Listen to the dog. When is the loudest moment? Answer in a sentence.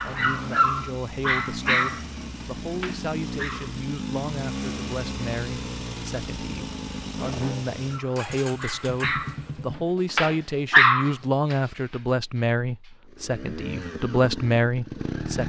The volume of the dog peaks at 11 seconds.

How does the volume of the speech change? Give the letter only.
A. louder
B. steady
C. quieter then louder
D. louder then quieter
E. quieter
A.